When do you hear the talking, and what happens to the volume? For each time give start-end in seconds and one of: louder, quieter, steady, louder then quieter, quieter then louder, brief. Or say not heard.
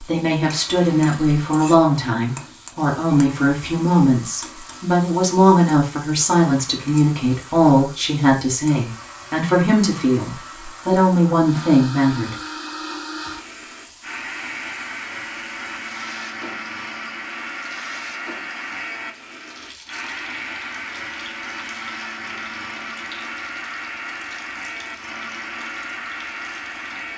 0.0-12.3 steady.